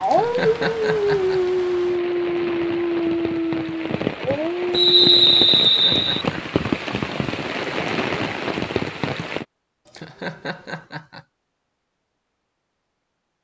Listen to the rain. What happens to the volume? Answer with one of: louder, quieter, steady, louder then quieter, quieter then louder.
louder.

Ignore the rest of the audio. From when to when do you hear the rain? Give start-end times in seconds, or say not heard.
0.0-9.4.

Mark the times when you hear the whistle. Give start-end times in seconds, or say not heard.
4.7-6.2.